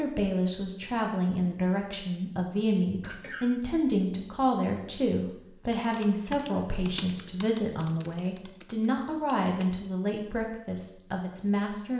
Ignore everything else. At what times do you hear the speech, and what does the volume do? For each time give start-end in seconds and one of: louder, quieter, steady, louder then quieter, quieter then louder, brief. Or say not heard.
0.0-11.9 steady.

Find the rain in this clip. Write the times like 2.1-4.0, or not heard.
not heard.